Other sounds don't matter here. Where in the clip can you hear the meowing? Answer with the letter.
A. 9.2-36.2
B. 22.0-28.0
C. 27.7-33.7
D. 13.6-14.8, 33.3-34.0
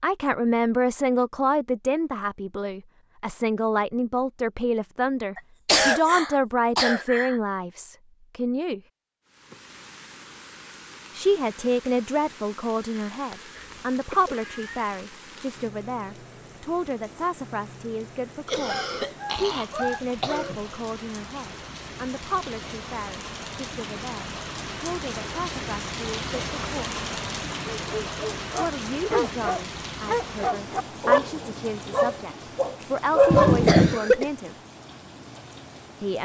D.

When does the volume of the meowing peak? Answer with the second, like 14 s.
34 s.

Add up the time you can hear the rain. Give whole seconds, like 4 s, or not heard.
27 s.